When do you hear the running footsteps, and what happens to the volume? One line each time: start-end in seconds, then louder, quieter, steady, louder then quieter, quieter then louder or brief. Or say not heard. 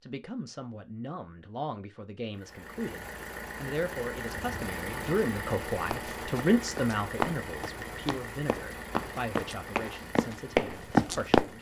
5.9-11.5 quieter then louder.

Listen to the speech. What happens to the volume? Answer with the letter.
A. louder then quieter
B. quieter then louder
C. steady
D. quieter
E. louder
A.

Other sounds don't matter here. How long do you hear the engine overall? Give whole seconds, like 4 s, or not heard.
9 s.